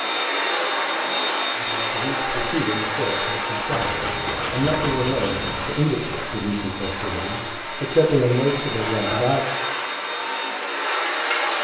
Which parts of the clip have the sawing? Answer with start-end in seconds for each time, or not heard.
3.7-5.7.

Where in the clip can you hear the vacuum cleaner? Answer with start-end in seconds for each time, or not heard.
0.0-11.5.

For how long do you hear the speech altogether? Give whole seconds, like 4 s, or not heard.
8 s.